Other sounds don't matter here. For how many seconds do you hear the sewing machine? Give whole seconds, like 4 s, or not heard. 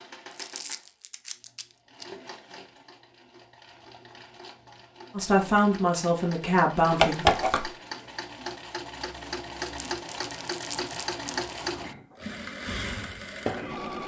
14 s.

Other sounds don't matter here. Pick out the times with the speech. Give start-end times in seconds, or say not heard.
5.1-7.2.